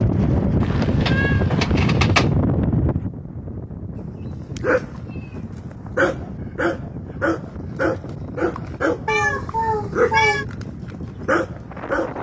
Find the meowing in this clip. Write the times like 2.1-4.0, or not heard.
0.6-2.3, 4.5-5.3, 9.1-10.4.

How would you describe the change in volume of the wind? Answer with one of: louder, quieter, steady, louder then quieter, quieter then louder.
quieter.